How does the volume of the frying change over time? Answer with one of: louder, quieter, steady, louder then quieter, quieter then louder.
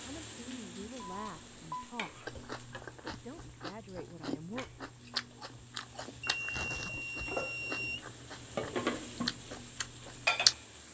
quieter then louder.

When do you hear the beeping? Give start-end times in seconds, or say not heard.
0.9-1.9, 6.2-8.1.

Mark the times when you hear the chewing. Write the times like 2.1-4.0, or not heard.
2.1-10.6.